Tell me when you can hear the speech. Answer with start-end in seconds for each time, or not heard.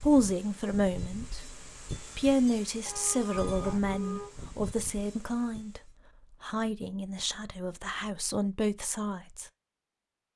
0.0-9.5.